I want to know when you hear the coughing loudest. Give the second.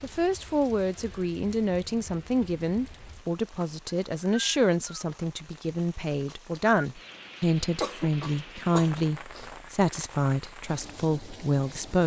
8 s.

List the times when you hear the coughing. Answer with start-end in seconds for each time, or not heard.
7.8-9.5.